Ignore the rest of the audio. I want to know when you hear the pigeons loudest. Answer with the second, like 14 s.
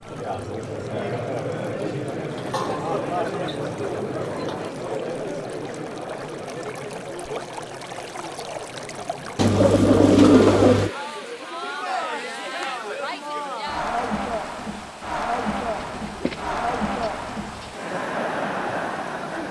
10 s.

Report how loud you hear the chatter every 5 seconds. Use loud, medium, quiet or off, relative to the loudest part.
loud, medium, loud, loud.